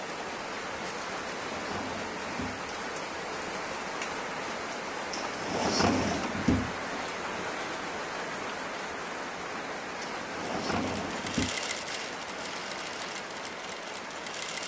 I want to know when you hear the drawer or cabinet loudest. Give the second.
6 s.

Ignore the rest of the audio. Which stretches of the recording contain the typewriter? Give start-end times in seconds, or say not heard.
not heard.